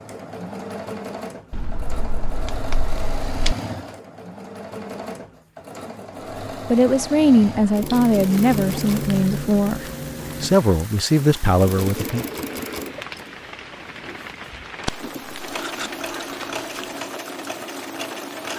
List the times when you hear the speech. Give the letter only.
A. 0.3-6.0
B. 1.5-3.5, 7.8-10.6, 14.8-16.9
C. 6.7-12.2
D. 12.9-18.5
C.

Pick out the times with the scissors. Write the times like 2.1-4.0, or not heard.
1.5-3.5, 7.8-10.6, 14.8-16.9.